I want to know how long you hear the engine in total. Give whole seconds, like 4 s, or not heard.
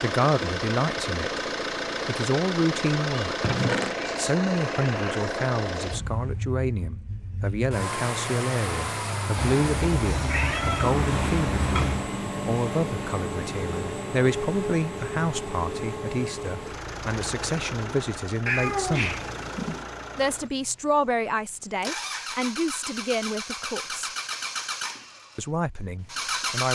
27 s.